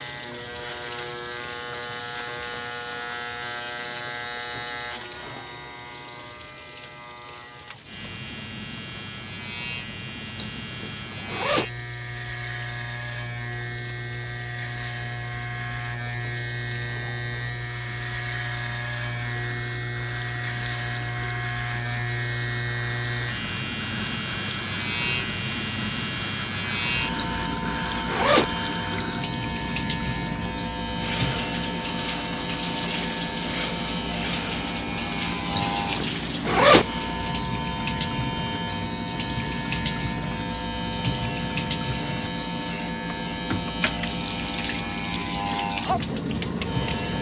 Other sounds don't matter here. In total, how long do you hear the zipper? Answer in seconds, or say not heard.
4 s.